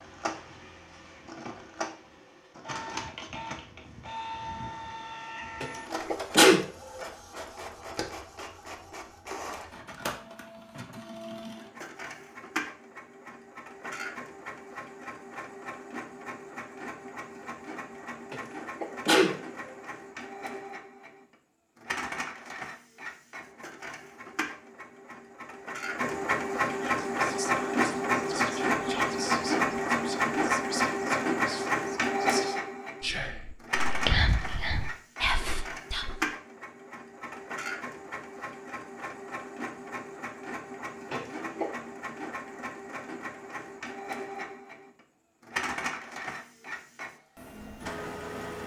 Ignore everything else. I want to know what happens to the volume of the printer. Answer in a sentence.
The loudness of the printer goes up, then down.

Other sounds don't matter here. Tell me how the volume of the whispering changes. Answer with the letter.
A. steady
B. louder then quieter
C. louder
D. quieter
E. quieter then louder
C.